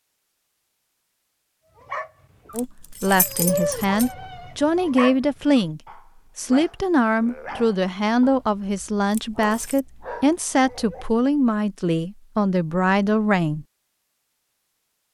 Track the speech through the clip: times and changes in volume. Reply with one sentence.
You can hear the speech from 2.5 to 13.7 s, at a steady volume.